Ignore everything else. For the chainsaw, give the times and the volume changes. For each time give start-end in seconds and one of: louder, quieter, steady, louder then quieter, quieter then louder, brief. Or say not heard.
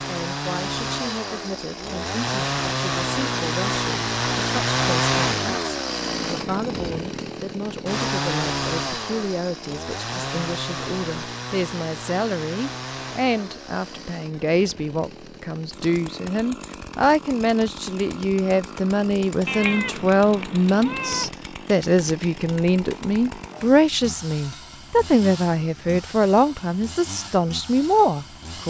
0.0-28.6 quieter.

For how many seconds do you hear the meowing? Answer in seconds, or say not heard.
2 s.